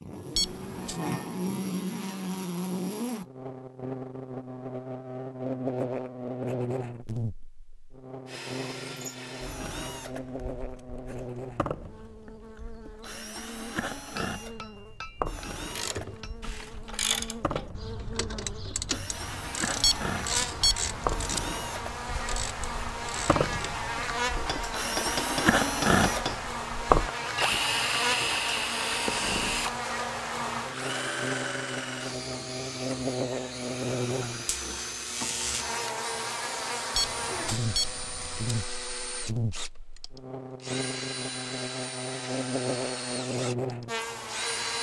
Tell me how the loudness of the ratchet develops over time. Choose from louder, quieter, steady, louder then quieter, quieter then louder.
quieter.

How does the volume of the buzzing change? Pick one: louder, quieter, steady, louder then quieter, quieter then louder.
quieter then louder.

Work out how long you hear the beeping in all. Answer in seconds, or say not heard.
4 s.